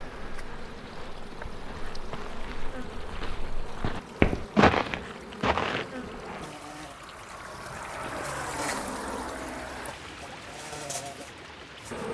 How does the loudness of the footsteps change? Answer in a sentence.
The volume of the footsteps goes up.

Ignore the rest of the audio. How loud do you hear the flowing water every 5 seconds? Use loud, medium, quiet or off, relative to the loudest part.
medium, loud, medium.